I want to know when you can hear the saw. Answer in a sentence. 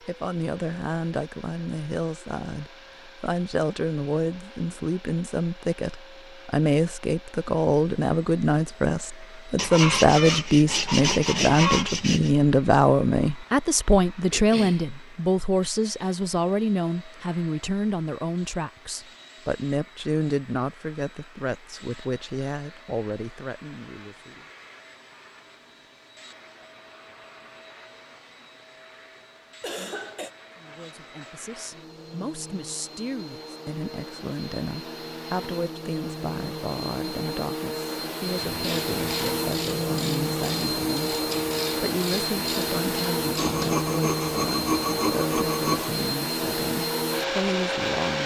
The saw can be heard from 9.6 to 12.3 s and from 43.4 to 45.9 s.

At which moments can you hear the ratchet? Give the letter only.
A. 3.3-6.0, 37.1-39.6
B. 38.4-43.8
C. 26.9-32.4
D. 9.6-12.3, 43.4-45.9
B.